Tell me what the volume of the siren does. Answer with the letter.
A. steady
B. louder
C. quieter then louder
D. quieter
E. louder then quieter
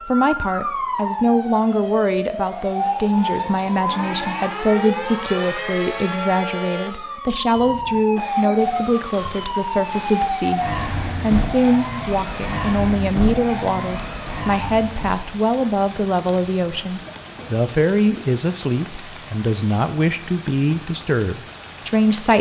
A.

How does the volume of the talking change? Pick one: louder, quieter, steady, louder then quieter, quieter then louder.
steady.